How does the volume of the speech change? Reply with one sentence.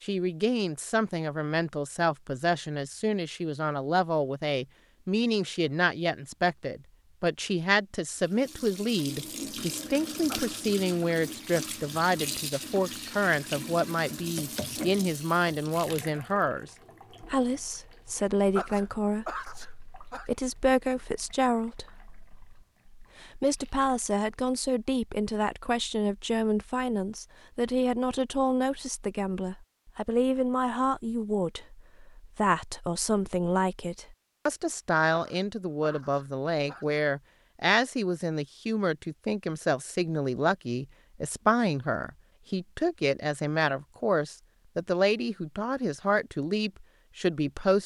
The loudness of the speech stays about the same.